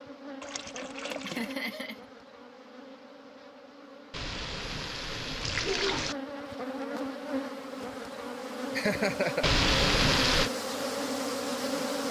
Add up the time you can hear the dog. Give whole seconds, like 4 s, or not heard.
not heard.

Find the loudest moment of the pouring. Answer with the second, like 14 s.
10 s.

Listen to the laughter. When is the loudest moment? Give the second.
9 s.